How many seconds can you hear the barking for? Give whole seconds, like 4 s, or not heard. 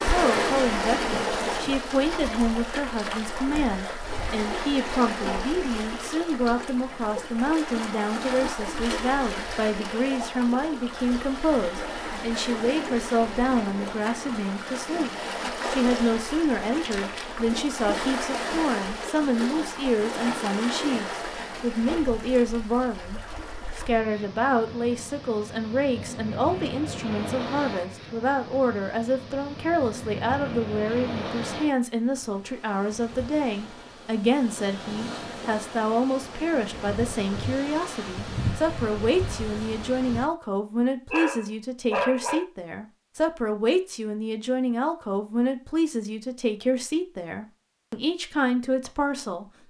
2 s.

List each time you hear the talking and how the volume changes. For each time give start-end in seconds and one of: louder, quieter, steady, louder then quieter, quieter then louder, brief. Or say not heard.
0.0-49.5 steady.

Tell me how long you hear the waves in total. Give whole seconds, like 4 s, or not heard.
40 s.